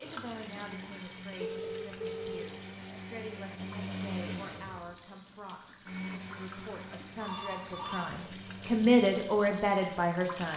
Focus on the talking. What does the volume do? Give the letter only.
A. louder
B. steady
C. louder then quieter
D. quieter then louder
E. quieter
A.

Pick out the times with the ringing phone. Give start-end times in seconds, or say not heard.
1.4-2.5, 7.2-8.1.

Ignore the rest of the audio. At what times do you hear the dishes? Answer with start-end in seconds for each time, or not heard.
not heard.